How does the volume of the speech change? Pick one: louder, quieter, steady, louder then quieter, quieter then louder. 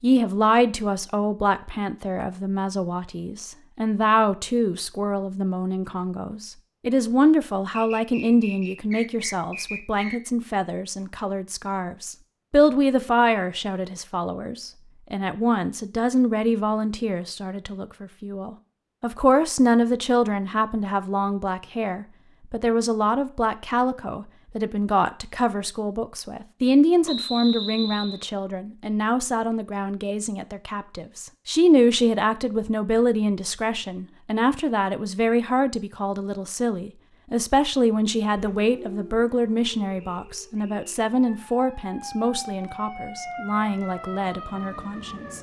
steady.